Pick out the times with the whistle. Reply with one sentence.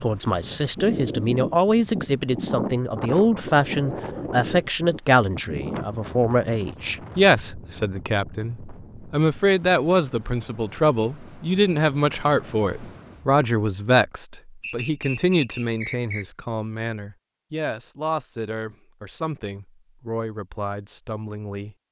The whistle can be heard from 14.6 to 16.4 s.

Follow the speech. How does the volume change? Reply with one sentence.
The volume of the speech goes down.